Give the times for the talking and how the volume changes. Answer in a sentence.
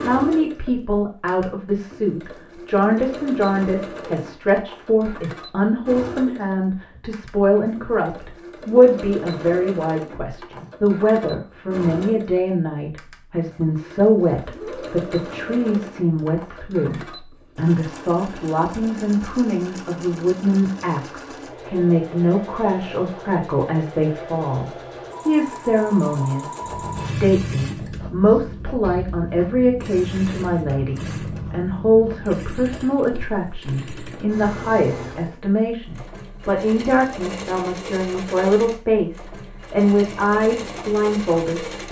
You can hear the talking from 0.0 to 41.8 s, at a steady volume.